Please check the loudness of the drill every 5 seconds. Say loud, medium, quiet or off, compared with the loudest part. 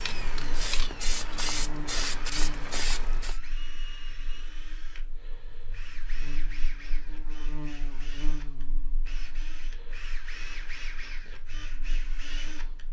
loud, medium, loud.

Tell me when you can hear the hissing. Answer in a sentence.
The hissing can be heard from 0.0 to 3.4 s.